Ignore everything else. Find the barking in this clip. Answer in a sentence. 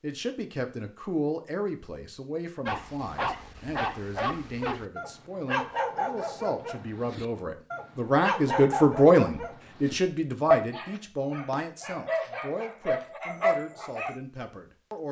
You can hear the barking from 2.6 to 14.2 s.